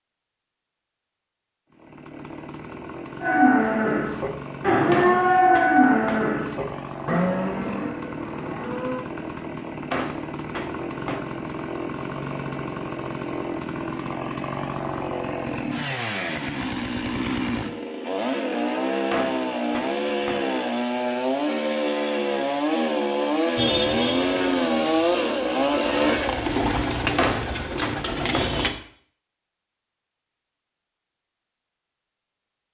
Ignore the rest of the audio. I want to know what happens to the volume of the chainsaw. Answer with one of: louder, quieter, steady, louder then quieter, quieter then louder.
louder.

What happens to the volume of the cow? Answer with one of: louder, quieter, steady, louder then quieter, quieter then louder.
louder then quieter.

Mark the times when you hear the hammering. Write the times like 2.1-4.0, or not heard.
4.9-6.3, 9.9-11.3, 19.1-20.5, 27.1-28.6.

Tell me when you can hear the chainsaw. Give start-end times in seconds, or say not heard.
1.7-26.6.